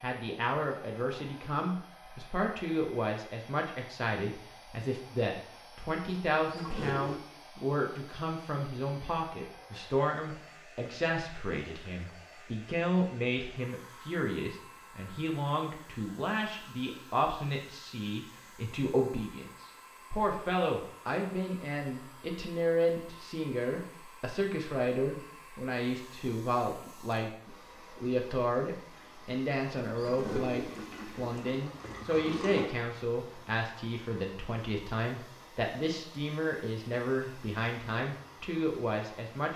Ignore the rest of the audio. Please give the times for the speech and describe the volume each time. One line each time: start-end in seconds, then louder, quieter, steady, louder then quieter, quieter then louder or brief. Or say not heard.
0.0-39.5 steady.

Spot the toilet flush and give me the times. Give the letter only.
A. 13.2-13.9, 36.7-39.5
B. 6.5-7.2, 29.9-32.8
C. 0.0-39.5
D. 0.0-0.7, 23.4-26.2
B.